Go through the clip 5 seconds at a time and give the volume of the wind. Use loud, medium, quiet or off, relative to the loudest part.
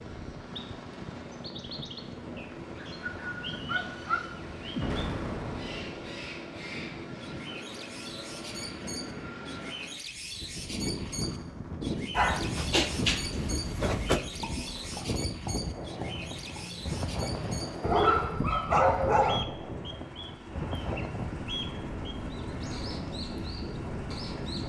medium, medium, loud, loud, loud.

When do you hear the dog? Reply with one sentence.
The dog can be heard from 2.8 to 4.2 s, from 12.2 to 14.2 s and from 17.8 to 19.4 s.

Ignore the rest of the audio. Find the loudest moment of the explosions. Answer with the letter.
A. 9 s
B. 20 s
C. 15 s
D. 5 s
D.